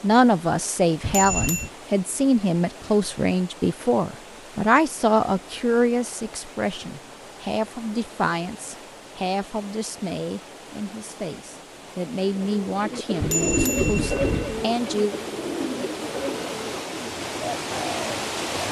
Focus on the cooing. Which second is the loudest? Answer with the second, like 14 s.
14 s.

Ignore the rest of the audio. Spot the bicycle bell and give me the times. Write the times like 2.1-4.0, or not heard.
1.0-1.7, 13.2-14.7.